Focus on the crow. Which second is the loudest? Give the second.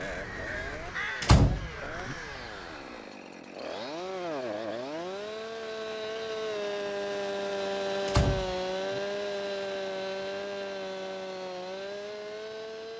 1 s.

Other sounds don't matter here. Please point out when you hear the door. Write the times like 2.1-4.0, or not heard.
1.2-2.1, 8.1-9.0.